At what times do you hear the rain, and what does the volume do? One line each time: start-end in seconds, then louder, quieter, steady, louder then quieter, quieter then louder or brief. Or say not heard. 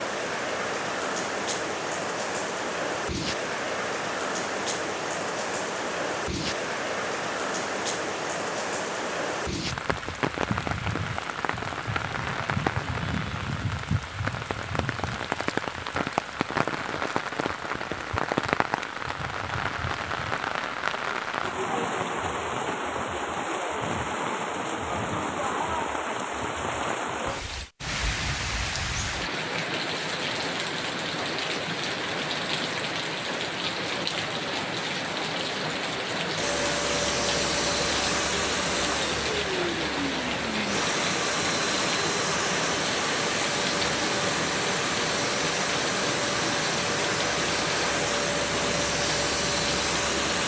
0.0-50.4 steady.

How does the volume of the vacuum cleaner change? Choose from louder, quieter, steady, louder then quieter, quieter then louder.
steady.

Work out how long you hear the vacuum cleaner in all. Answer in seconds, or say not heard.
14 s.